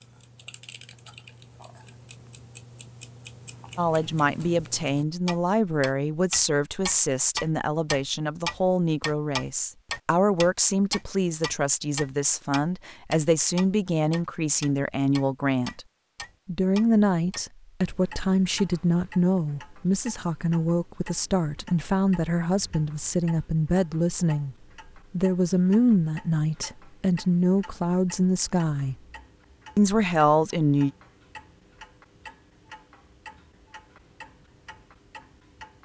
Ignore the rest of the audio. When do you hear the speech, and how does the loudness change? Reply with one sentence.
You can hear the speech from 3.8 to 15.8 s, at a steady volume; from 16.4 to 28.9 s, at a steady volume; and briefly from 29.8 to 30.9 s.